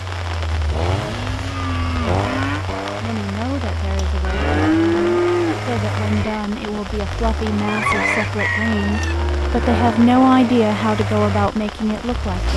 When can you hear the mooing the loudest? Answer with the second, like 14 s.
5 s.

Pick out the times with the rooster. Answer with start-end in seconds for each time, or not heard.
7.7-9.2.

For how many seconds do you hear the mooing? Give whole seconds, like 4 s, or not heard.
6 s.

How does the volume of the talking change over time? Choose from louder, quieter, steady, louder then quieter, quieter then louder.
louder.